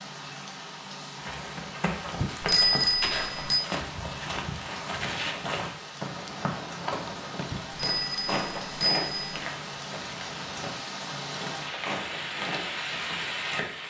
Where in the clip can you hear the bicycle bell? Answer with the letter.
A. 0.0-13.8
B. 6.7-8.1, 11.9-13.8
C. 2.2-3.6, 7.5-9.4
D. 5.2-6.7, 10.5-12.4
C.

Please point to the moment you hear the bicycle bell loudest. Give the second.
3 s.